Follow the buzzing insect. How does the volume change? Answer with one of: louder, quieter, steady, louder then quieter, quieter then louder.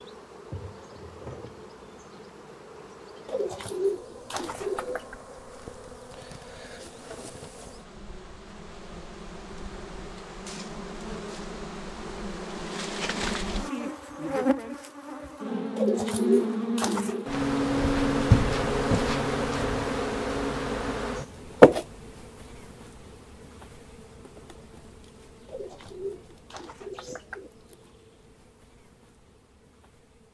louder then quieter.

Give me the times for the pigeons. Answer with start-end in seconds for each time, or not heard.
3.2-5.2, 15.8-17.2, 25.4-27.5.